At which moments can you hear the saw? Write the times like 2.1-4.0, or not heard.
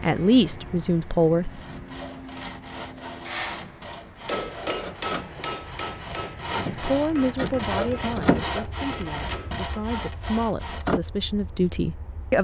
1.5-11.0.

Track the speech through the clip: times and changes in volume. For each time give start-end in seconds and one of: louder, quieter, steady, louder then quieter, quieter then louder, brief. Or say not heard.
0.0-1.6 brief
6.7-12.3 quieter then louder.